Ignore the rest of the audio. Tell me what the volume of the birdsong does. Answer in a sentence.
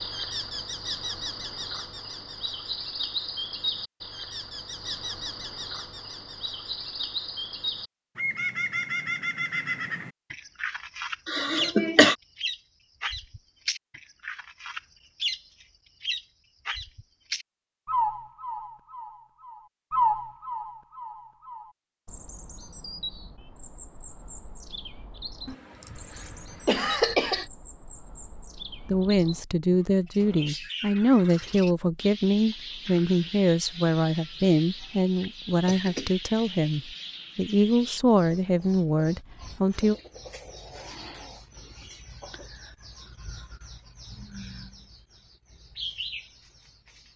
The loudness of the birdsong goes down.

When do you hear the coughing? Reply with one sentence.
You can hear the coughing from 11.2 to 12.2 s, from 25.4 to 27.4 s and from 35.6 to 36.1 s.